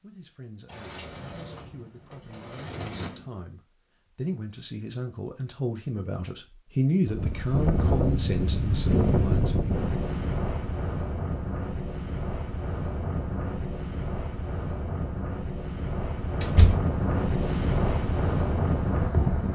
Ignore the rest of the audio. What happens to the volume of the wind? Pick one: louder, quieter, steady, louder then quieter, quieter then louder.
quieter then louder.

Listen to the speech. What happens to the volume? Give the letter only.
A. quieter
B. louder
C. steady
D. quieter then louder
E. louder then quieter
B.